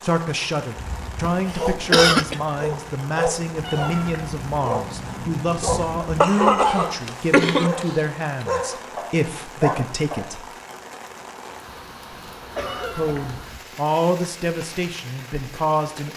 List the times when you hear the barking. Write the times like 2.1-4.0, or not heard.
0.8-10.3.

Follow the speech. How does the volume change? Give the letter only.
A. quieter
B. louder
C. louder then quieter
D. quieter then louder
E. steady
E.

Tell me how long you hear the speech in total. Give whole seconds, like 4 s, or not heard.
14 s.